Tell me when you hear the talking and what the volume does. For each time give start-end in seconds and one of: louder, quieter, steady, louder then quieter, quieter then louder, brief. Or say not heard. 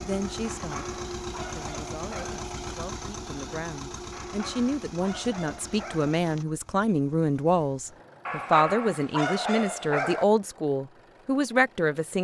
0.0-12.1 louder.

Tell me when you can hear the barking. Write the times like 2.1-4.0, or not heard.
0.4-2.5, 4.1-6.2, 8.2-10.2.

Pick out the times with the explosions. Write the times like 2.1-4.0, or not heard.
not heard.